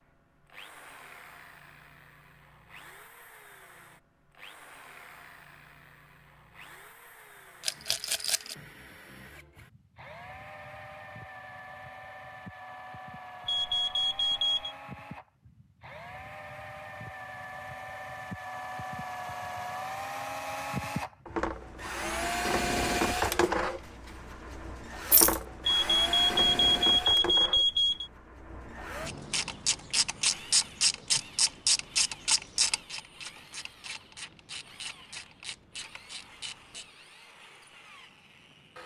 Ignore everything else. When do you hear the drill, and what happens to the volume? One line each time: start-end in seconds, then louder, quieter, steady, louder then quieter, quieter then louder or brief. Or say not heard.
0.0-38.8 louder then quieter.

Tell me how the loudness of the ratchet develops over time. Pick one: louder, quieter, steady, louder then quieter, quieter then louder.
quieter.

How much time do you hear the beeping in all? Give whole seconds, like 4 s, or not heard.
4 s.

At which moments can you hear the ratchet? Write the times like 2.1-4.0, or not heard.
29.1-36.9.